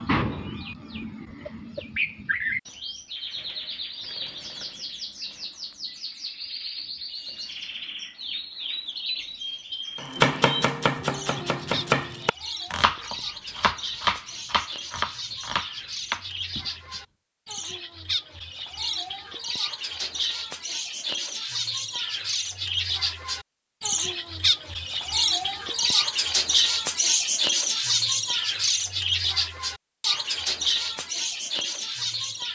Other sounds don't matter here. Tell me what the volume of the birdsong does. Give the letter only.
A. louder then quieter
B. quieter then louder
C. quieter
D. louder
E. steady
D.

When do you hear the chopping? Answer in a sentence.
You can hear the chopping from 10.0 to 17.0 s.